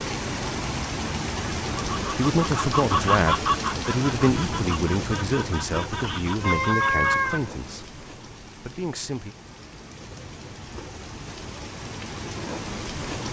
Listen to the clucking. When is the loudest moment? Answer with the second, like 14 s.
3 s.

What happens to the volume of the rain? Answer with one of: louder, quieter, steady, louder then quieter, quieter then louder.
quieter then louder.